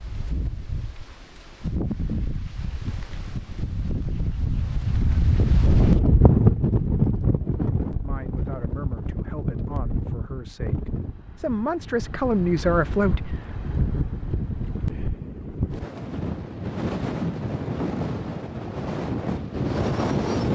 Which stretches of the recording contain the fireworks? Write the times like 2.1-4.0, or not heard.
not heard.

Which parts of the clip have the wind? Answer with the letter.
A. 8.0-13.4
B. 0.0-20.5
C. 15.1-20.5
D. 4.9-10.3
B.